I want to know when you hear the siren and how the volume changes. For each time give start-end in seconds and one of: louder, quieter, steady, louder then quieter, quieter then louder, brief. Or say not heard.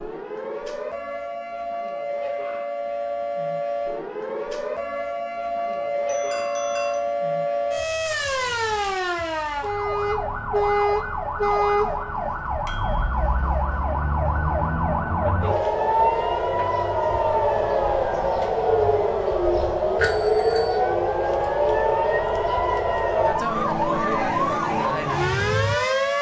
0.0-26.1 louder.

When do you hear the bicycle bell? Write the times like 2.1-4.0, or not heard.
5.7-7.0, 12.7-13.1, 19.9-20.8.